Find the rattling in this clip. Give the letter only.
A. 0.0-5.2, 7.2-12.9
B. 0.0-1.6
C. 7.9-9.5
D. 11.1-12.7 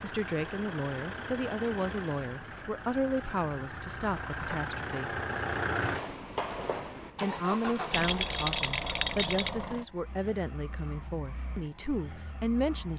C.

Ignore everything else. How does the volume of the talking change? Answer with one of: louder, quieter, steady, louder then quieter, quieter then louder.
steady.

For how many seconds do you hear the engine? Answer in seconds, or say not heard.
13 s.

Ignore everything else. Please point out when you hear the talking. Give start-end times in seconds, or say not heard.
0.0-5.2, 7.2-12.9.